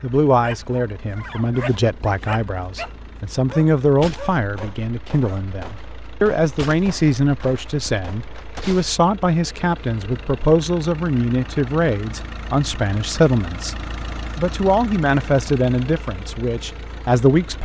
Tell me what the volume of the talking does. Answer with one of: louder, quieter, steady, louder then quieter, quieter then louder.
steady.